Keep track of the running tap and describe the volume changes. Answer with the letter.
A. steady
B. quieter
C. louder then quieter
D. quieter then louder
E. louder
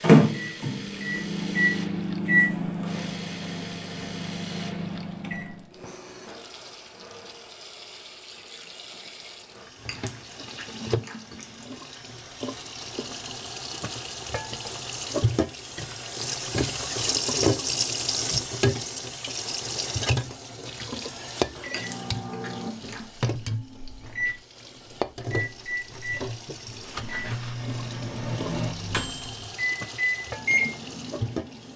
C.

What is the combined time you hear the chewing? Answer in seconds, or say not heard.
3 s.